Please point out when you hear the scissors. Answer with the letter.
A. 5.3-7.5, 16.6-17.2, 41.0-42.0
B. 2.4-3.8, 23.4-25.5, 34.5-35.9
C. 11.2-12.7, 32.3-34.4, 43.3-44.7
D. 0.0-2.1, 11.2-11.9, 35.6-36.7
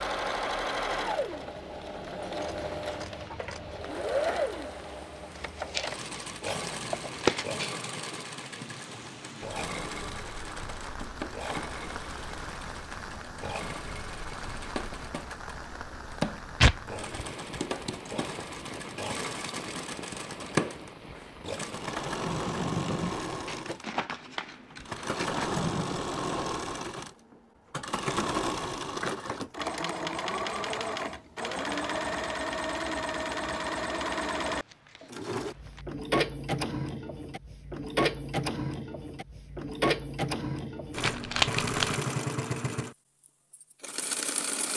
B.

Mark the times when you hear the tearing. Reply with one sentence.
The tearing can be heard from 5.3 to 7.5 s, from 16.6 to 17.2 s and from 41.0 to 42.0 s.